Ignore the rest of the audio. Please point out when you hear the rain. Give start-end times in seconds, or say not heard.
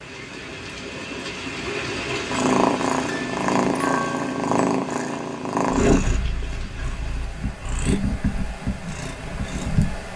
0.0-7.5.